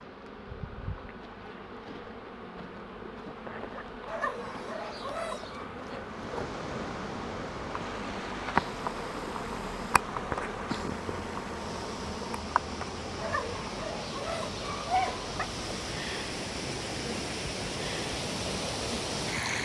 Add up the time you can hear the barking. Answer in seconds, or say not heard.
4 s.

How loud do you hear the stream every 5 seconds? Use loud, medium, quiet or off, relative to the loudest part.
off, medium, medium, loud.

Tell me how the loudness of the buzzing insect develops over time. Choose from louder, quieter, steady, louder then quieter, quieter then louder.
louder then quieter.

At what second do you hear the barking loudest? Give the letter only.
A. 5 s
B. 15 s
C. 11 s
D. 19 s
B.